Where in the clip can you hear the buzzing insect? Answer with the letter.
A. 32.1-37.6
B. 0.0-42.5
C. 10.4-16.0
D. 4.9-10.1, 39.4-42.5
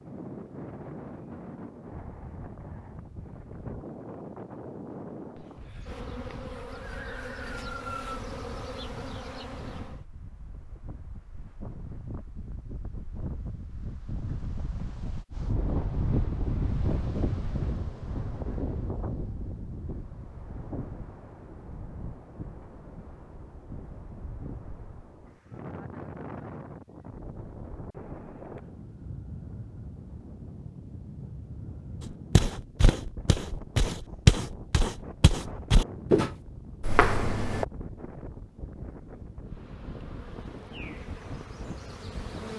D.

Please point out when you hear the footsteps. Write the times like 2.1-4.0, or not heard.
32.1-37.6.